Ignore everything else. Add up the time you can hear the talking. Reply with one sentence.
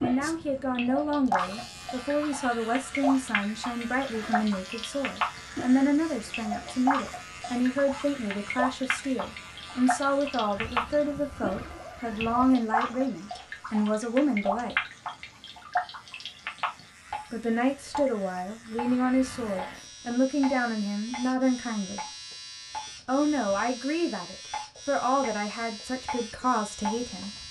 The talking can be heard for 24 seconds in total.